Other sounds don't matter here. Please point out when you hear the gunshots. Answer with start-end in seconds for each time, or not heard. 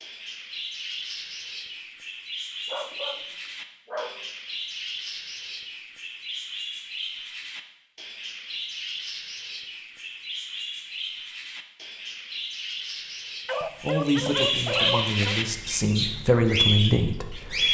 not heard.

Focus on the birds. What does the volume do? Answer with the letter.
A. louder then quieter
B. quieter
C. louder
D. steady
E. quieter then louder
C.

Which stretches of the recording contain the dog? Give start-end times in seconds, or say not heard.
2.6-4.3, 13.4-15.4.